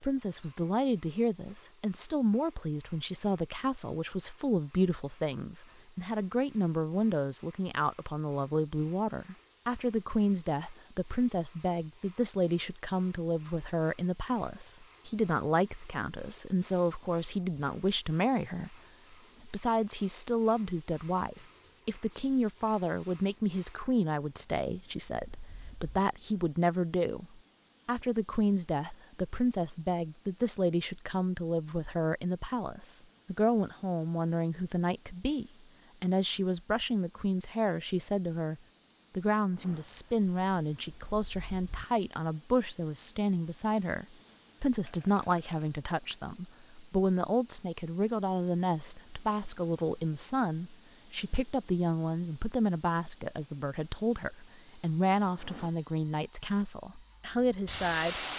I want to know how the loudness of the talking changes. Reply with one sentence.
The loudness of the talking stays about the same.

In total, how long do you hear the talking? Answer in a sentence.
The talking can be heard for 58 seconds in total.